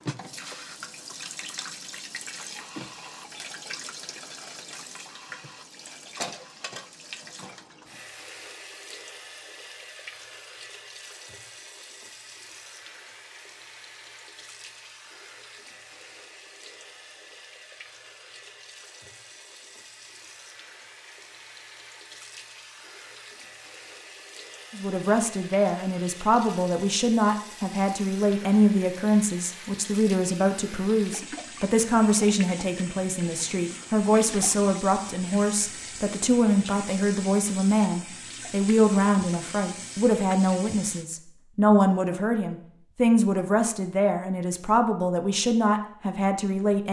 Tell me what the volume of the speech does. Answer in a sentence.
The volume of the speech stays about the same.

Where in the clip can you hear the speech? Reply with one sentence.
The speech can be heard from 24.7 to 46.8 s.